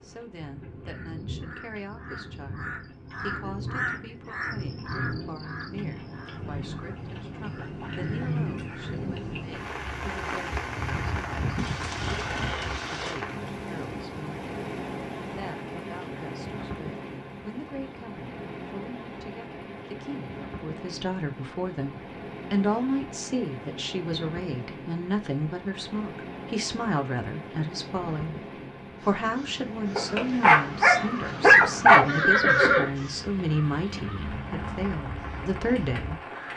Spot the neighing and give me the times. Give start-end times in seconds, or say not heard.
11.6-13.2, 32.0-32.9.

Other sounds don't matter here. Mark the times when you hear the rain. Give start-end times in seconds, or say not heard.
0.0-36.5.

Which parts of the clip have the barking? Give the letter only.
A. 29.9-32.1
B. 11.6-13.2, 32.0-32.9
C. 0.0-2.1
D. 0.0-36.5
A.